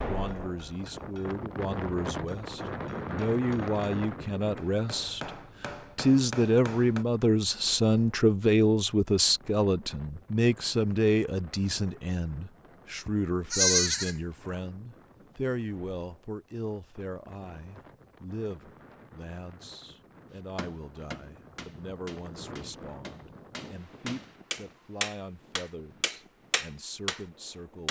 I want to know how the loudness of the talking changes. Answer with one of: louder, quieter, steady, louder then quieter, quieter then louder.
louder then quieter.